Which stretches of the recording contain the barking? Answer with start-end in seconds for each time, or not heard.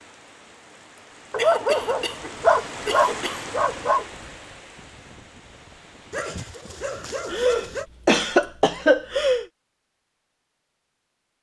1.3-4.0, 6.1-7.8.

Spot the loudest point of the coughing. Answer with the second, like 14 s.
8 s.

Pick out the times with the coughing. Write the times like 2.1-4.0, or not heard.
1.4-3.5, 7.3-9.4.